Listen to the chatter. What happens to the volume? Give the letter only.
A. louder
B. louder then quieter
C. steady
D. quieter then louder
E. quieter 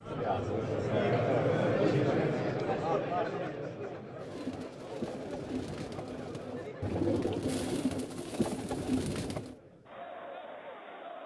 E.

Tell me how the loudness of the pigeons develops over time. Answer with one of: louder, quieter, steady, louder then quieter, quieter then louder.
louder.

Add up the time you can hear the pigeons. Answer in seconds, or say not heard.
5 s.